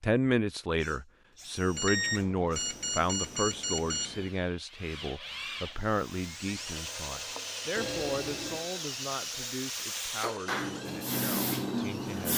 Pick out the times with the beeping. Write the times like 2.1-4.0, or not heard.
1.8-4.3, 7.8-8.7.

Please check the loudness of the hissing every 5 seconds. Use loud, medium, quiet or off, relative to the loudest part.
off, medium, loud.